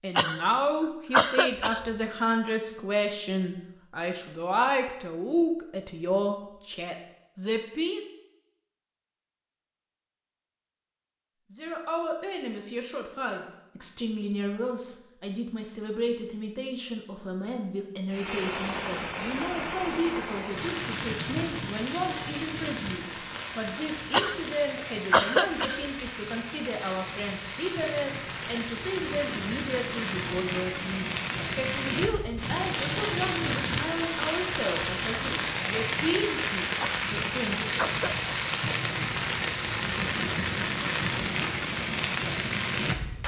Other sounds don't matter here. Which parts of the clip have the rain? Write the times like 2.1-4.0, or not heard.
18.1-43.2.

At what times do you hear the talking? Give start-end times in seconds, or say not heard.
0.0-8.1, 11.5-37.9.